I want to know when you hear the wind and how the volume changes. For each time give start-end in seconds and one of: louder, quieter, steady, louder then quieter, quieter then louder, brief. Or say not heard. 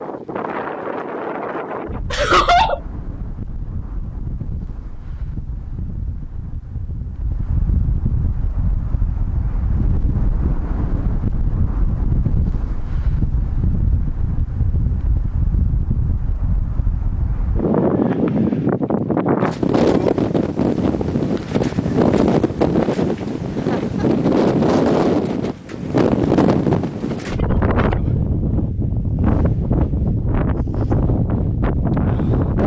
0.0-32.6 louder.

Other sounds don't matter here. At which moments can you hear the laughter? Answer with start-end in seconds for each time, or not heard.
2.1-2.8, 23.5-24.2.